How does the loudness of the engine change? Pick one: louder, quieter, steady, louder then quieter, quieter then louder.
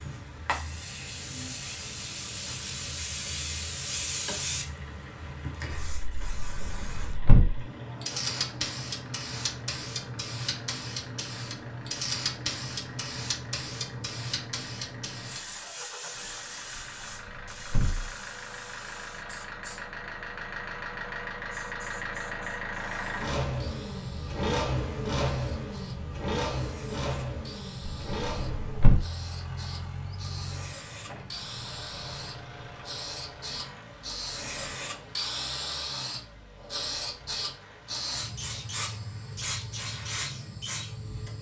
louder then quieter.